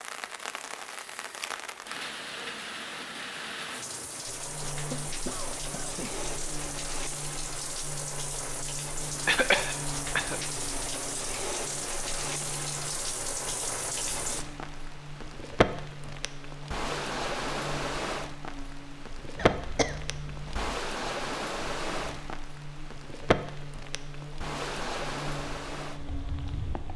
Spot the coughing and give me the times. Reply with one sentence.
The coughing can be heard from 4.6 to 6.2 s, from 9.2 to 10.4 s and from 19.4 to 20.5 s.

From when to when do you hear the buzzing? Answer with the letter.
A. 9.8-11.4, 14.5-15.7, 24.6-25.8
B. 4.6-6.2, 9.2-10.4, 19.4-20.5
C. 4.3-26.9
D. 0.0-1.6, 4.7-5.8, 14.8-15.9
C.